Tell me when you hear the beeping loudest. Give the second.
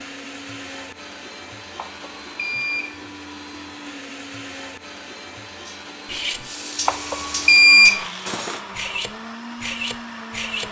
8 s.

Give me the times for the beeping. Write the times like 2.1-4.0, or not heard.
1.8-3.0, 6.8-8.1.